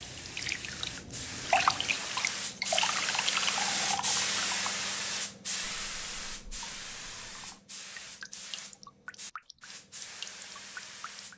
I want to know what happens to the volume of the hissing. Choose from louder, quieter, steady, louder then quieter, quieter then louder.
louder then quieter.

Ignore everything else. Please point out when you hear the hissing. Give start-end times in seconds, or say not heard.
0.0-11.3.